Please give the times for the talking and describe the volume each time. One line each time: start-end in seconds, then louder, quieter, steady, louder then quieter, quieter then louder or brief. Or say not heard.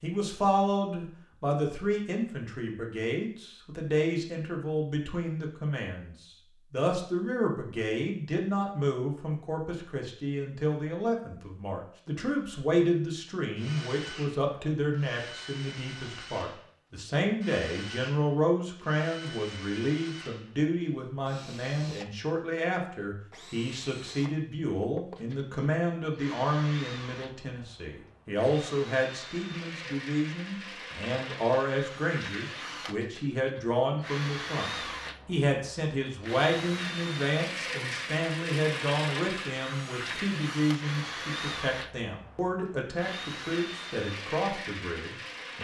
0.0-45.6 steady.